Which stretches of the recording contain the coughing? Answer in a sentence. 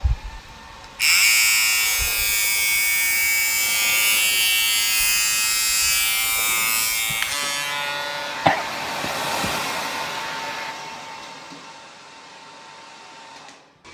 The coughing can be heard from 8.4 to 9.6 s.